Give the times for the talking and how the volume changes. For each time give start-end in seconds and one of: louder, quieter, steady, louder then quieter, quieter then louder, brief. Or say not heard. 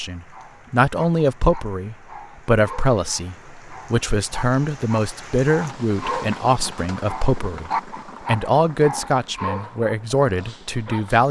0.0-11.2 steady.